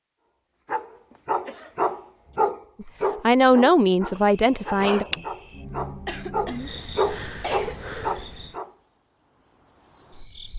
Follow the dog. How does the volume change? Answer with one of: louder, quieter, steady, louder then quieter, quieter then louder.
quieter then louder.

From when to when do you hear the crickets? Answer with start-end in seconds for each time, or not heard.
4.1-10.5.